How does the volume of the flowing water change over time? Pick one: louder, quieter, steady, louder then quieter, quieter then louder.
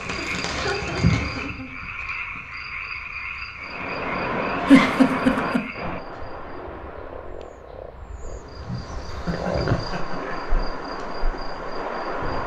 quieter then louder.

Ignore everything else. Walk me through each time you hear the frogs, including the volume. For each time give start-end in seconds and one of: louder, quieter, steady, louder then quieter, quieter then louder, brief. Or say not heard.
0.0-10.5 quieter then louder.